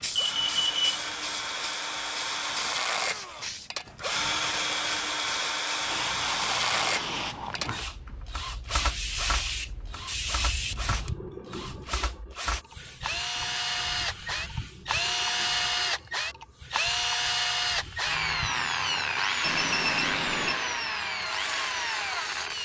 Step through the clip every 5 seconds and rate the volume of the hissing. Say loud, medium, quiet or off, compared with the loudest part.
loud, loud, loud, medium, loud.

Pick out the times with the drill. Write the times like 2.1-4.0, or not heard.
0.0-22.6.